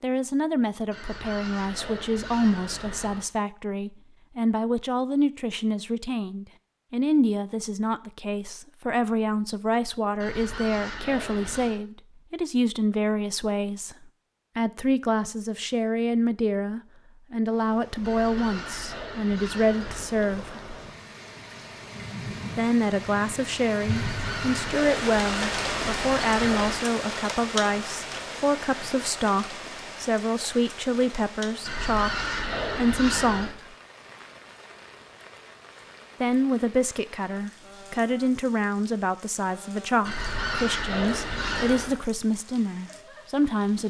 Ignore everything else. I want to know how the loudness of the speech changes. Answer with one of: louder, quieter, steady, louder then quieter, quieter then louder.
steady.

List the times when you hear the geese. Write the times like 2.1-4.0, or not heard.
0.9-3.2, 10.2-11.8, 18.0-20.1, 23.9-26.8, 31.6-33.5, 40.0-42.0.